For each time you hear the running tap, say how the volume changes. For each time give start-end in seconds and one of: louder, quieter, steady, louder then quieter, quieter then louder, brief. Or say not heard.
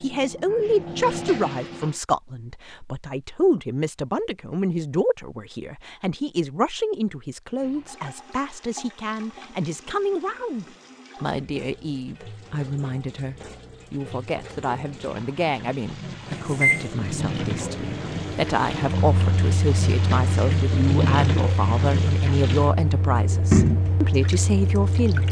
0.0-2.0 brief
7.5-25.2 louder.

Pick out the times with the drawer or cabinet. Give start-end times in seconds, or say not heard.
not heard.